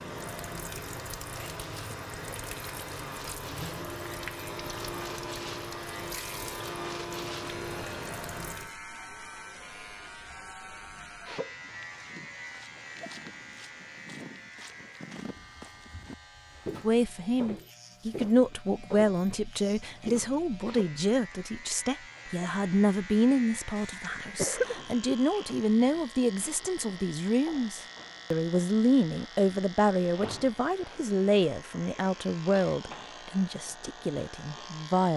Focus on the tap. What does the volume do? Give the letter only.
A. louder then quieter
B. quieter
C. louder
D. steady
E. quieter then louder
D.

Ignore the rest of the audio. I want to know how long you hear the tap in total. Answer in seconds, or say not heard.
9 s.